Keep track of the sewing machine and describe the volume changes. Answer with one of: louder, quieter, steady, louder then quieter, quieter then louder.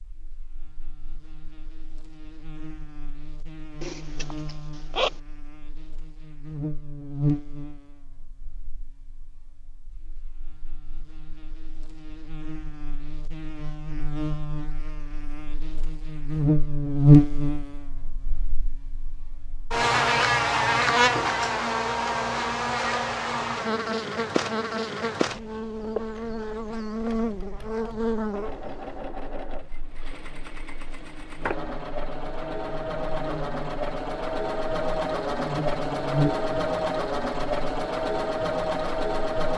louder.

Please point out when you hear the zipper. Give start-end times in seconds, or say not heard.
3.8-5.2.